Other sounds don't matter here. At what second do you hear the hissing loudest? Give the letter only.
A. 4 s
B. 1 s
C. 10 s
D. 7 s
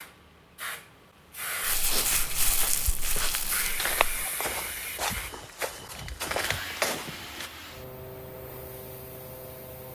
A.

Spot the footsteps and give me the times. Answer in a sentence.
You can hear the footsteps from 1.9 to 7.5 s.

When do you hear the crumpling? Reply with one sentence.
The crumpling can be heard from 1.6 to 4.2 s.